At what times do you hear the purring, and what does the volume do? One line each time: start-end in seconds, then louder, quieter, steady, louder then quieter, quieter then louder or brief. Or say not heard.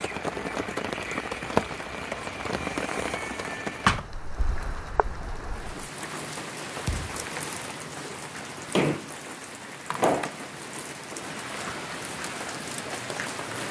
not heard.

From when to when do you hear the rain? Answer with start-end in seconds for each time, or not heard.
0.0-13.6.